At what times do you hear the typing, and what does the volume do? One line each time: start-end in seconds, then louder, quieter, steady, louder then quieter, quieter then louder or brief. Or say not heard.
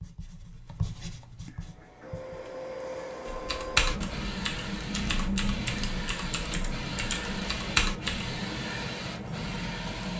3.2-8.3 quieter then louder.